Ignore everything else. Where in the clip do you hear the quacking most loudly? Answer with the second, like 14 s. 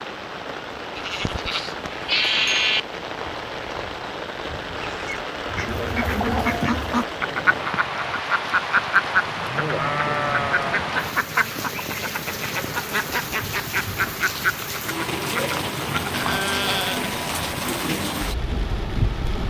9 s.